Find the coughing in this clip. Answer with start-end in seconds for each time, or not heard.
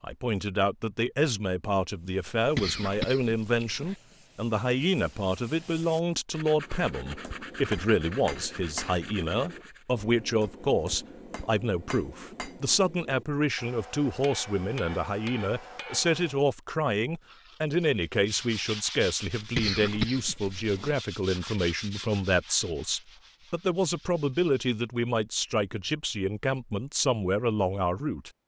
2.4-4.0, 19.4-20.9.